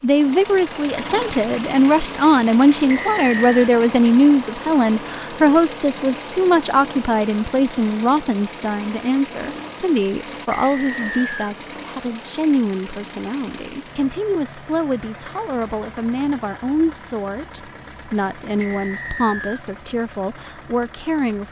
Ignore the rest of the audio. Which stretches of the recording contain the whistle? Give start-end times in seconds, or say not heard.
2.9-3.5, 10.5-11.6, 18.6-19.6.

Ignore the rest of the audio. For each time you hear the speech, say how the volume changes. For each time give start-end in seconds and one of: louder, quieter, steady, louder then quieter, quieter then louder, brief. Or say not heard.
0.0-21.4 quieter.